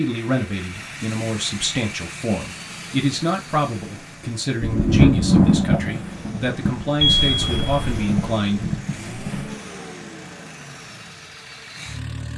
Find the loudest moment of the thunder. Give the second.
5 s.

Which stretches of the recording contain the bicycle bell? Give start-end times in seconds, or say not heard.
7.0-8.1.